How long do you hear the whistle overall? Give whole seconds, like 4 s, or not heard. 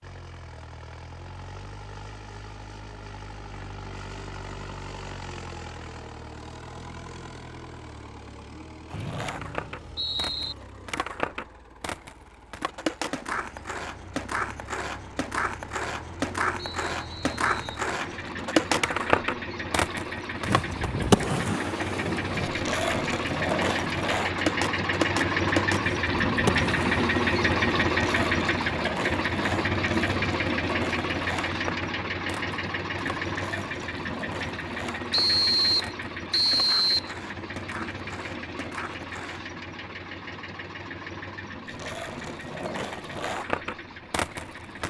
5 s.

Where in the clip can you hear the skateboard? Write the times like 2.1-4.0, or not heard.
8.8-39.5, 41.6-44.8.